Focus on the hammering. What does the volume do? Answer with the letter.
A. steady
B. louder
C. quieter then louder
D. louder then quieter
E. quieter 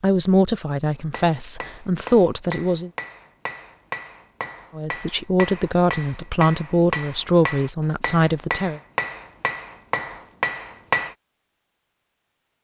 B.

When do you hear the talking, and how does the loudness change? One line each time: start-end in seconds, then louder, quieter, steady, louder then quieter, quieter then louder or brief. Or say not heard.
0.0-2.9 brief
4.8-8.8 steady.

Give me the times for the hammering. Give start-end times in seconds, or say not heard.
0.9-11.2.